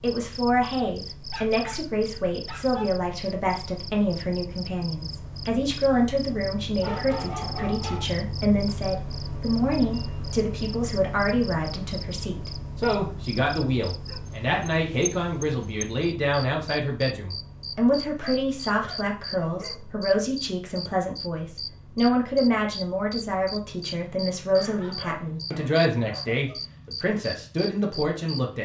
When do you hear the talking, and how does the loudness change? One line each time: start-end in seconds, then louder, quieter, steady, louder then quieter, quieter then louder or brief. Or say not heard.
0.0-28.6 steady.